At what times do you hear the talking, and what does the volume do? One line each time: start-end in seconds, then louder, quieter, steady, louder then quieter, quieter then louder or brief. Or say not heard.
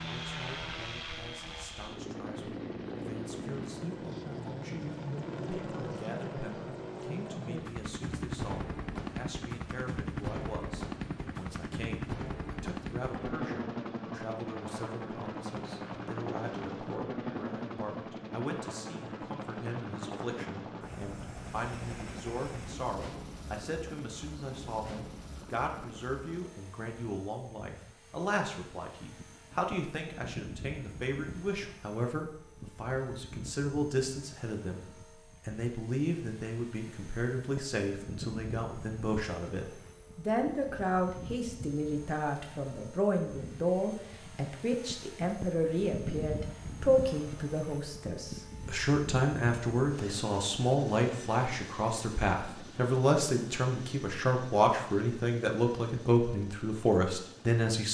0.0-34.8 louder
35.5-57.9 louder.